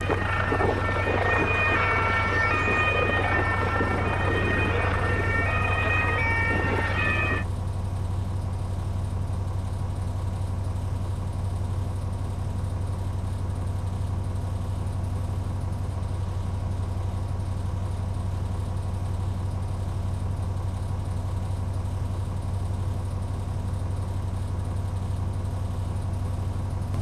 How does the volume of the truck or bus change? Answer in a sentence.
The volume of the truck or bus stays about the same.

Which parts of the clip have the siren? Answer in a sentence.
The siren can be heard from 0.0 to 7.5 s.